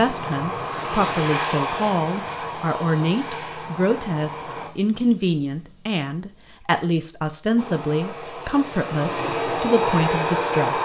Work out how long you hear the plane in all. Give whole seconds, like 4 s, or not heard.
8 s.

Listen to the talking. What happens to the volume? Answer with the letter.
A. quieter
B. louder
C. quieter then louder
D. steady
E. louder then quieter
D.